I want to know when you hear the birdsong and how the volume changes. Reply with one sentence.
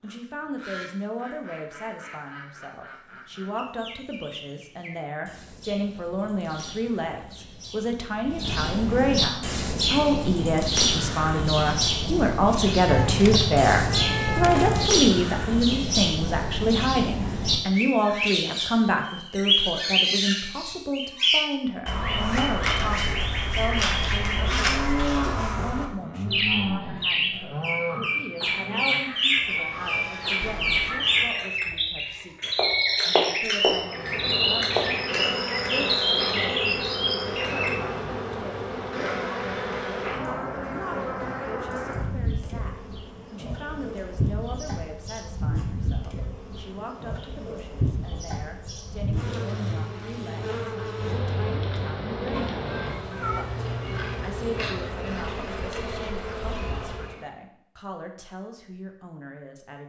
You can hear the birdsong from 0.0 to 37.8 s, getting louder.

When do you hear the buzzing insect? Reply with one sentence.
The buzzing insect can be heard from 33.8 to 57.2 s.